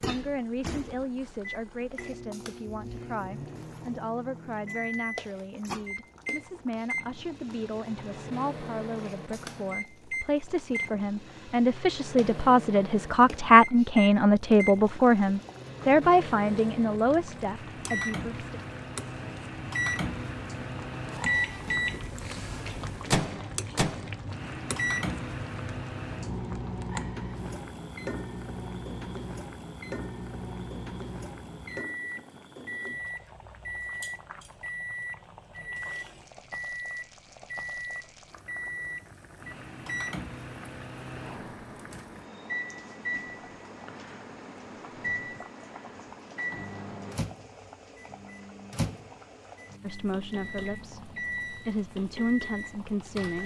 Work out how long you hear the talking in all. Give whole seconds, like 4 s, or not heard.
22 s.